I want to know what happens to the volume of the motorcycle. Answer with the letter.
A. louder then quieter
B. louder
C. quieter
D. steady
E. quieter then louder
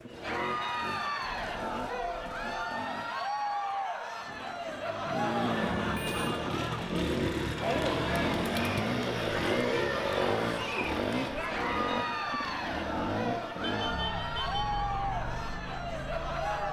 A.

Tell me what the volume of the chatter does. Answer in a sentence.
The loudness of the chatter stays about the same.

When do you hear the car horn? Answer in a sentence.
You can hear the car horn from 1.1 to 2.6 s, from 5.6 to 6.3 s and from 13.6 to 14.7 s.